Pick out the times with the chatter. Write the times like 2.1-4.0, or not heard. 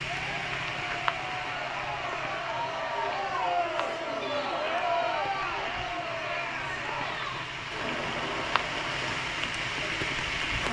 0.0-10.6.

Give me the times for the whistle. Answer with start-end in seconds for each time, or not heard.
not heard.